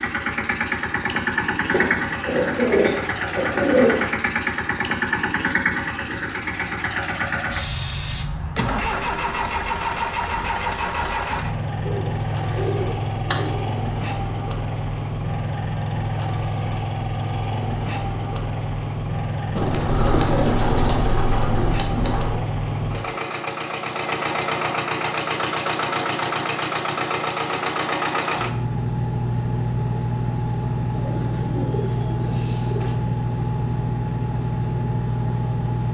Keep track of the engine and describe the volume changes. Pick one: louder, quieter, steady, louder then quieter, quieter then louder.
steady.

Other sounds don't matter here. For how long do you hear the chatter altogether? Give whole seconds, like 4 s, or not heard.
not heard.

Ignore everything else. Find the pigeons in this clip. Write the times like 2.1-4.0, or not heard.
1.7-4.1, 11.8-13.7, 19.6-22.4, 30.9-33.0.